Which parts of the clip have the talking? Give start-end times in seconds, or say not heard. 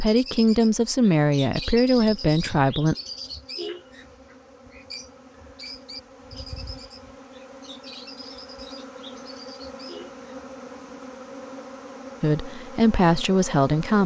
0.0-3.0, 12.2-14.0.